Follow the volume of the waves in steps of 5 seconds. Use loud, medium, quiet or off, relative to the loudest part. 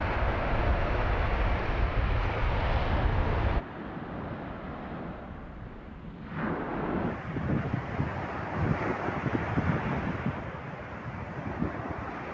medium, loud, loud.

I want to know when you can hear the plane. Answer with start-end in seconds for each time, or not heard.
0.0-3.6.